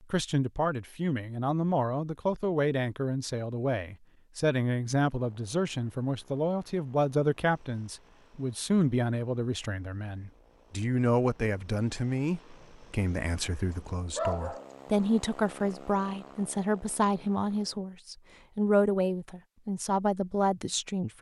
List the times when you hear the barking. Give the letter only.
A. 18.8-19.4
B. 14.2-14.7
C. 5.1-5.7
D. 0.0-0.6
B.